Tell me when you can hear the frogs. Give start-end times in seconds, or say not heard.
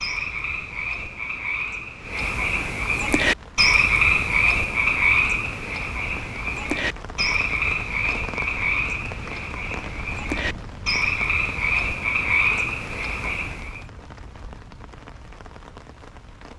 0.0-13.8.